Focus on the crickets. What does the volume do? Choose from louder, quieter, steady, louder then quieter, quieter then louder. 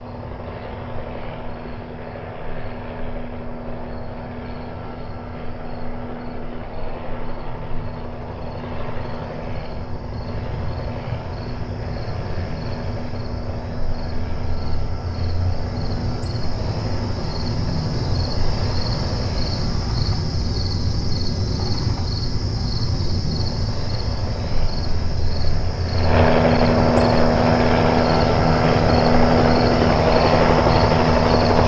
louder.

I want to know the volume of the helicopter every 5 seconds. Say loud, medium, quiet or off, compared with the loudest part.
quiet, quiet, quiet, quiet, quiet, loud, loud.